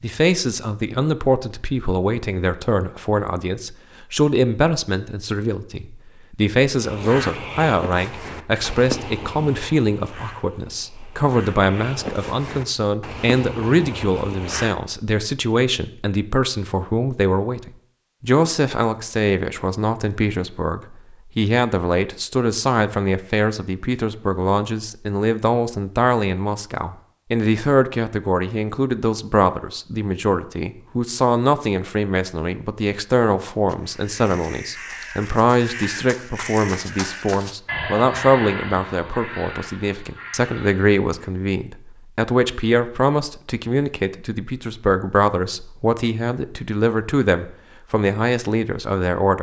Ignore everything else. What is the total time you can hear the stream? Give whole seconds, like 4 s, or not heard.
not heard.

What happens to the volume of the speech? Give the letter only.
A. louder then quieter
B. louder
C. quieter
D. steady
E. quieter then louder
D.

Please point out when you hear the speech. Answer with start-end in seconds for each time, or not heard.
0.0-49.3.